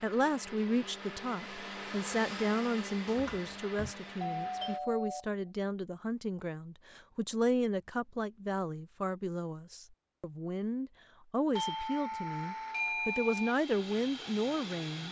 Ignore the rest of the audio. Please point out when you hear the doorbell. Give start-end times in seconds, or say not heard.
4.2-5.2, 11.6-13.6.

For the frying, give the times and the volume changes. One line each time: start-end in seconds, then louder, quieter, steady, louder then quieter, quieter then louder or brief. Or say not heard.
not heard.